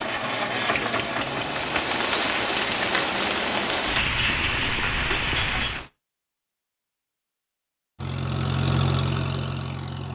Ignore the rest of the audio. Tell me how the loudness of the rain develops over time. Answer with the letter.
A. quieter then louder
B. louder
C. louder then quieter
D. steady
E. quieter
B.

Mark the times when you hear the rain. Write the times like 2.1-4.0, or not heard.
0.0-5.9.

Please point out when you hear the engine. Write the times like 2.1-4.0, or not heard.
0.0-3.9, 8.0-10.1.